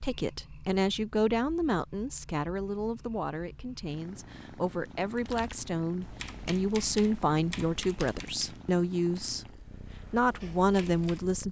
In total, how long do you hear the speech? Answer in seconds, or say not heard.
11 s.